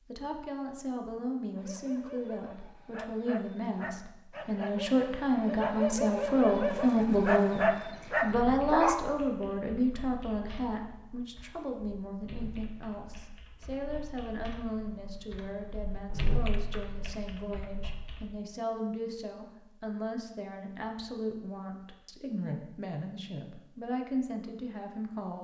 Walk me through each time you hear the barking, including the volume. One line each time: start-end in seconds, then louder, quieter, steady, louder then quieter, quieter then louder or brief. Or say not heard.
1.5-9.1 louder.